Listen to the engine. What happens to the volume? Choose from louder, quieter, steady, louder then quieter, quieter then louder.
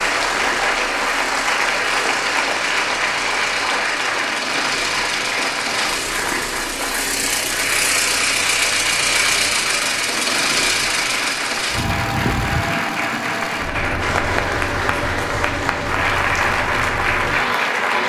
louder then quieter.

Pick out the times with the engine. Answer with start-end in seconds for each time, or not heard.
0.0-18.0.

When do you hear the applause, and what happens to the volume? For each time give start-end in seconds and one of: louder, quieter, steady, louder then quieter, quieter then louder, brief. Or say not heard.
0.0-18.0 quieter then louder.